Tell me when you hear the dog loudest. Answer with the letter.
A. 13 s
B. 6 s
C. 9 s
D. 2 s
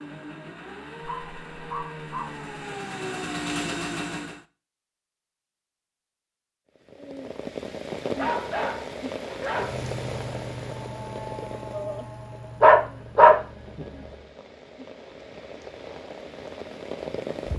A.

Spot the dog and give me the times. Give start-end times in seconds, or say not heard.
1.0-2.6, 8.2-9.8, 12.6-13.4.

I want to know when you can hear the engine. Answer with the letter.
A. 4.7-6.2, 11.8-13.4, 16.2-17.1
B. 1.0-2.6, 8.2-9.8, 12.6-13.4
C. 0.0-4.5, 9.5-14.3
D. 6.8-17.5
C.